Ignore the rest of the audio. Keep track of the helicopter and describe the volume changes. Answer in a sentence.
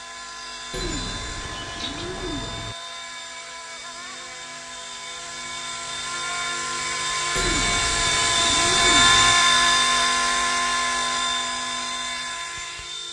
The volume of the helicopter goes up, then down.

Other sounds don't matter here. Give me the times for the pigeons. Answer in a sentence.
The pigeons can be heard from 0.7 to 2.8 s and from 7.3 to 9.3 s.